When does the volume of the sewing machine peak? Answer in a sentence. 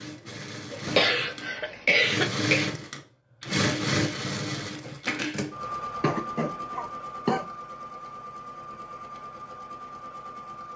The volume of the sewing machine peaks at 4 seconds.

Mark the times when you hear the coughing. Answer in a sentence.
The coughing can be heard from 0.7 to 2.8 s and from 6.0 to 7.5 s.